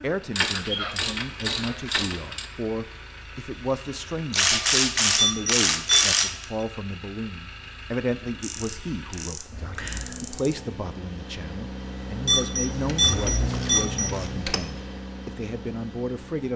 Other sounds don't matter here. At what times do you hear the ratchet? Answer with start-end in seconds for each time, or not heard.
0.3-2.5, 4.3-6.5, 8.4-10.6, 12.7-14.6.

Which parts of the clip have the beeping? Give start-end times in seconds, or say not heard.
5.2-6.2, 12.2-14.1.